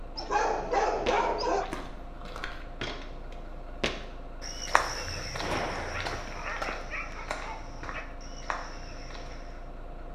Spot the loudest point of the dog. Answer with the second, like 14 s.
1 s.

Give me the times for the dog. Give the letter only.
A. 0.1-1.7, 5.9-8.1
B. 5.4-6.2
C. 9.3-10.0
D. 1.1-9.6
A.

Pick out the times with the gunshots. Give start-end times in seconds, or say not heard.
5.4-6.2.